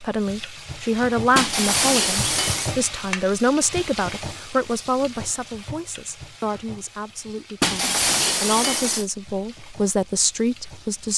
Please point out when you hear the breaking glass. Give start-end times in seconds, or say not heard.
1.4-2.8, 7.6-9.1.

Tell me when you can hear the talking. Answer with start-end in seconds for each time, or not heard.
0.0-11.1.